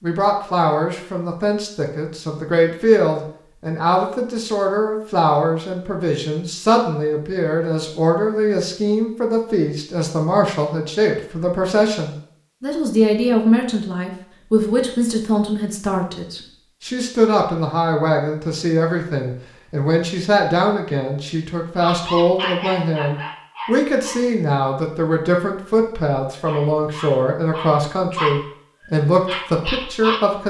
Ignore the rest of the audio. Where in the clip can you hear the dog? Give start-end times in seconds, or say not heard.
21.8-24.3, 26.4-30.3.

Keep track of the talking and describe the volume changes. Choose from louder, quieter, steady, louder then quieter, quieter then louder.
steady.